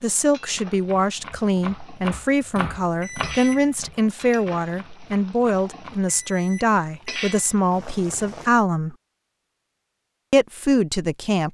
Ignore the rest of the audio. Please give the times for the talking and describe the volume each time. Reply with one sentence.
You can hear the talking from 0.0 to 8.9 s, at a steady volume; and briefly from 10.3 to 11.4 s.